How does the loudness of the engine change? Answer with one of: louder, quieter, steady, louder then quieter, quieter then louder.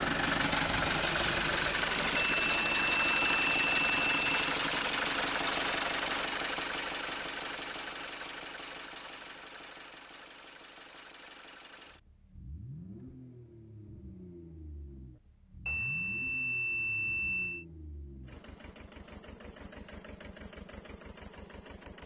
quieter.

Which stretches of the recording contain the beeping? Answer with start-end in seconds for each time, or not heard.
2.2-4.4, 15.7-17.6.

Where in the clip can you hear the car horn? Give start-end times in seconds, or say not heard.
not heard.